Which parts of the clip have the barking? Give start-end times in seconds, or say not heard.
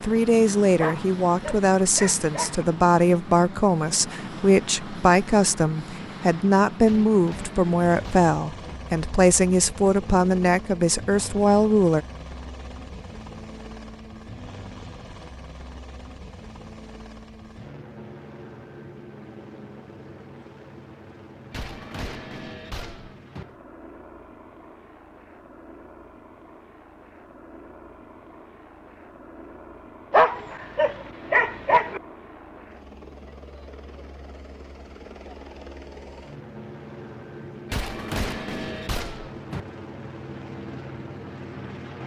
0.8-2.6, 30.1-32.0.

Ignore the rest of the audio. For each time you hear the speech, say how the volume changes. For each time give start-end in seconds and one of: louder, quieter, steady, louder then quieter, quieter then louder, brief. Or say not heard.
0.0-12.1 steady.